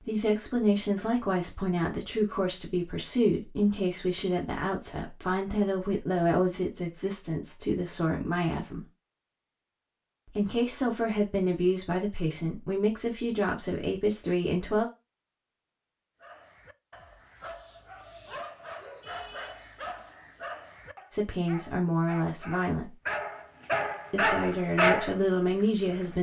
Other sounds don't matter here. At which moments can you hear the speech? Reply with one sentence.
The speech can be heard from 0.0 to 8.8 s, from 10.2 to 14.8 s, from 21.1 to 22.9 s and from 24.1 to 26.1 s.